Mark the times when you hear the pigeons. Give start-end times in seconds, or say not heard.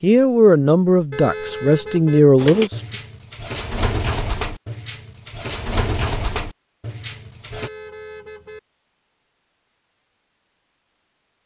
2.4-7.7.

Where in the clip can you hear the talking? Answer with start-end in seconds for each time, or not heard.
0.0-2.8.